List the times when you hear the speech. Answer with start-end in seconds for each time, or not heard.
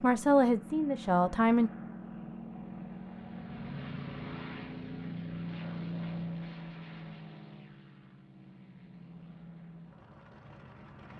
0.0-1.7.